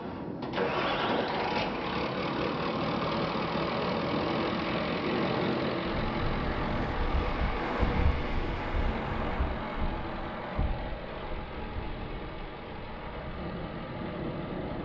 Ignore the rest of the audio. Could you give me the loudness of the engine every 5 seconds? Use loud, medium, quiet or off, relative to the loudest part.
loud, loud, medium.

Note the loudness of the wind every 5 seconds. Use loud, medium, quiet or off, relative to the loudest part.
loud, loud, medium.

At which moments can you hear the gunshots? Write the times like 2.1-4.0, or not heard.
7.0-8.9.